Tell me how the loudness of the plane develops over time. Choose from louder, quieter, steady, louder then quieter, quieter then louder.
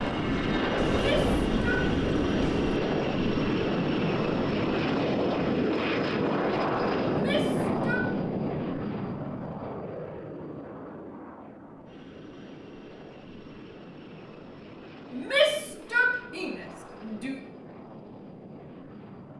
quieter.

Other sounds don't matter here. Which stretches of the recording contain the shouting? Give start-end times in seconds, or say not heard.
0.9-1.9, 7.0-8.1, 15.1-17.4.